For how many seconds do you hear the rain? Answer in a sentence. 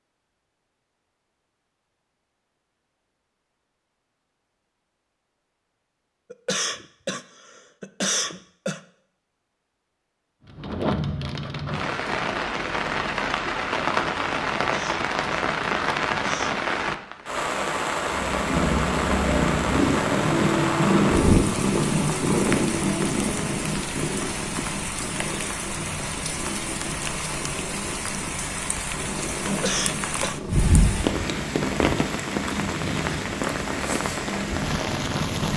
The rain can be heard for 25 seconds in total.